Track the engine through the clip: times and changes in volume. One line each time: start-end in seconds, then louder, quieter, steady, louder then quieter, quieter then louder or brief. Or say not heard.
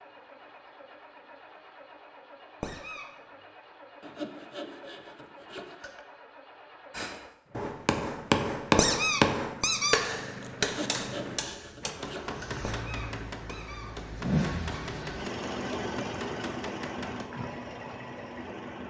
0.0-18.8 louder.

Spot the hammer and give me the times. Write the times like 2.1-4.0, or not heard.
6.9-17.4.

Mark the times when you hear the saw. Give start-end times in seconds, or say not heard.
4.0-6.0, 10.6-12.6.